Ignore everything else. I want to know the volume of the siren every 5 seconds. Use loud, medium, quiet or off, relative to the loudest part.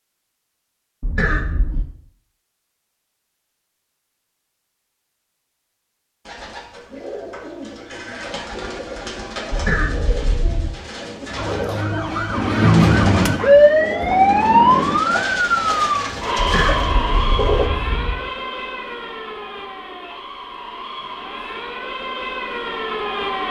off, off, loud, medium, quiet.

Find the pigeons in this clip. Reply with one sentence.
You can hear the pigeons from 6.2 to 17.7 s.